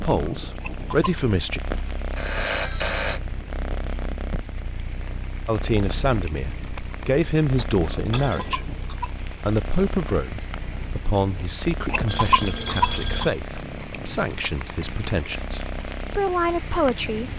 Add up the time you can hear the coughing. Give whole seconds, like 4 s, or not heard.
3 s.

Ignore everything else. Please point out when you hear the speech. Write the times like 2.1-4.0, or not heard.
0.0-1.6, 5.5-17.3.